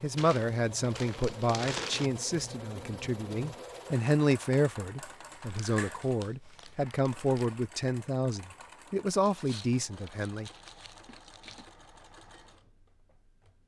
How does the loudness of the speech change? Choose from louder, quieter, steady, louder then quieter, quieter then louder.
steady.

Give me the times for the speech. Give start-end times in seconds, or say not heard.
0.0-10.5.